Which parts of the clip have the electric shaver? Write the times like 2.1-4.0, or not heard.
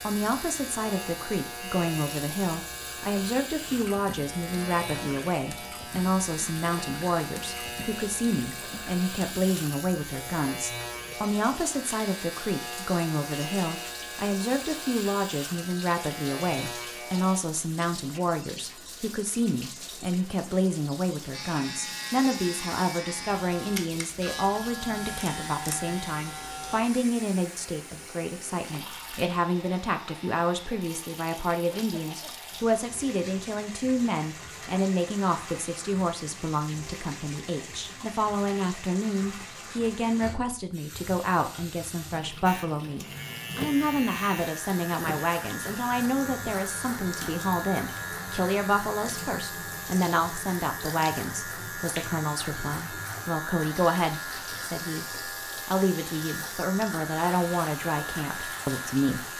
0.0-17.4, 21.3-26.9, 42.5-59.3.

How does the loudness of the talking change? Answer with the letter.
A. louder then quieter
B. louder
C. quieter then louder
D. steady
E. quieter
D.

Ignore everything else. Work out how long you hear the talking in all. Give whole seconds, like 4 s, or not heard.
59 s.